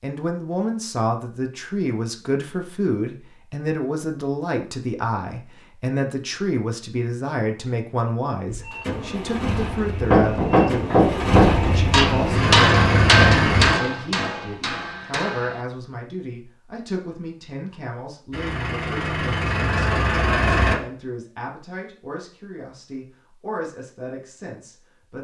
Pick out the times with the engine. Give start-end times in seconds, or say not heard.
8.4-13.8, 18.3-20.8.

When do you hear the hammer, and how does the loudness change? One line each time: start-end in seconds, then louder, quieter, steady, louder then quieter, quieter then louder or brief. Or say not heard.
10.0-15.7 quieter.